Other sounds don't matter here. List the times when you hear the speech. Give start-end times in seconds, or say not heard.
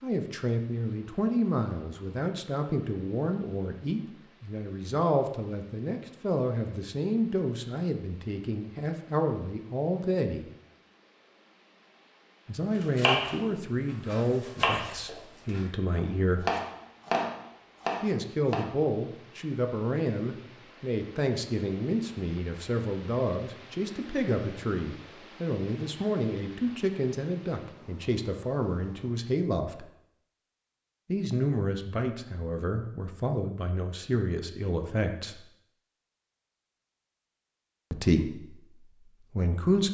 0.0-10.4, 12.4-16.4, 18.0-29.9, 31.1-35.5, 37.9-39.8.